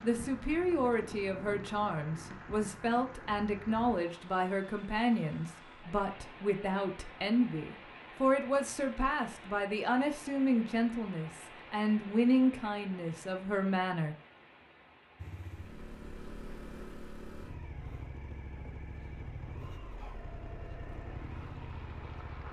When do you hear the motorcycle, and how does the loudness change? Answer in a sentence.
You can hear the motorcycle from 15.2 to 22.4 s, at a steady volume.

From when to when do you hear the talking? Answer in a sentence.
The talking can be heard from 0.0 to 14.2 s.